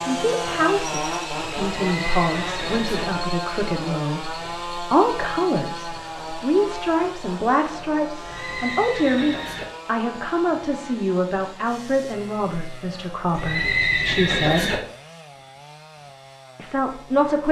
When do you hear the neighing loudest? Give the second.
14 s.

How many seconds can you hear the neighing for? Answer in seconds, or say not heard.
4 s.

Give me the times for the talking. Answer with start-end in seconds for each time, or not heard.
0.0-14.8, 16.6-17.4.